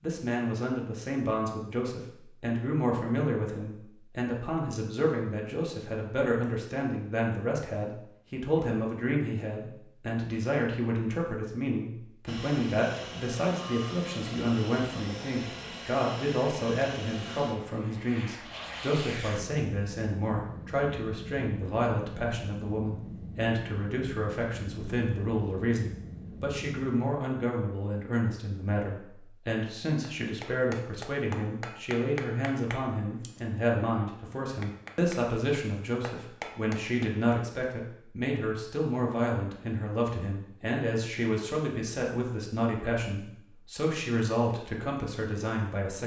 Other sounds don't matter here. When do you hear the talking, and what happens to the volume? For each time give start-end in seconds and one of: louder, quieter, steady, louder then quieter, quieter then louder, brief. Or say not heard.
0.0-46.0 steady.